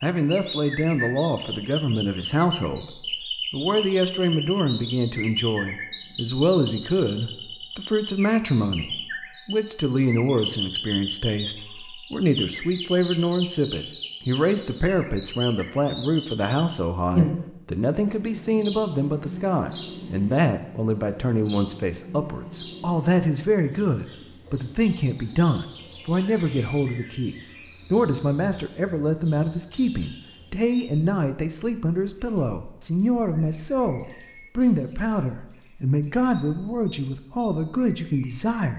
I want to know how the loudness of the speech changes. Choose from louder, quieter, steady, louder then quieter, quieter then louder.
steady.